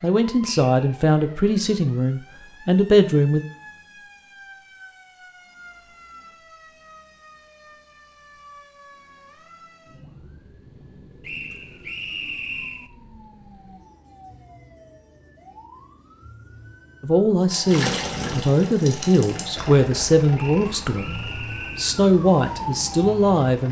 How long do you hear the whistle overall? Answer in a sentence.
The whistle can be heard for 4 seconds in total.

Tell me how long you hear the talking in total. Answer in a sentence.
The talking can be heard for 10 seconds in total.